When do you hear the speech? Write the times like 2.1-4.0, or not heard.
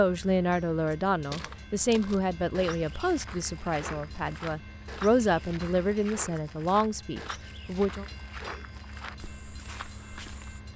0.0-8.1.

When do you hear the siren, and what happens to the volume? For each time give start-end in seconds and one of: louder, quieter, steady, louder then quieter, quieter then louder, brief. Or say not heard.
not heard.